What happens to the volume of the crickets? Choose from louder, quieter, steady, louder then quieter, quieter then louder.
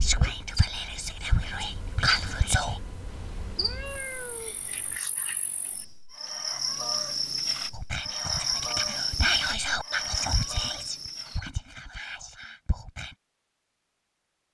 quieter then louder.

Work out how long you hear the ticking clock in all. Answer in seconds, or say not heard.
not heard.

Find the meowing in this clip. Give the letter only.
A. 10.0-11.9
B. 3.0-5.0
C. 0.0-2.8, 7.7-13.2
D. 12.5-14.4
B.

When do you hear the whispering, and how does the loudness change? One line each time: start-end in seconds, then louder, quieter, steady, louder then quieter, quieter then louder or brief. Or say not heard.
0.0-2.8 brief
7.7-13.2 louder then quieter.